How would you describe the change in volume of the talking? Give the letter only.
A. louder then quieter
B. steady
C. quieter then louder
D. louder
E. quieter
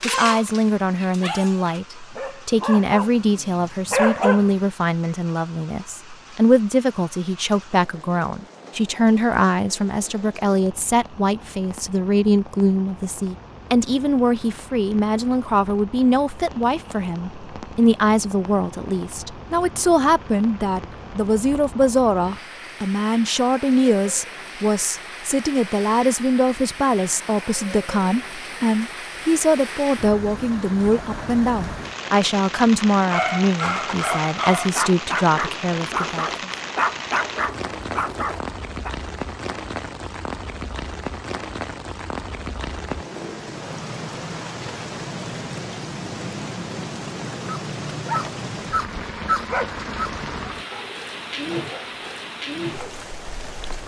B.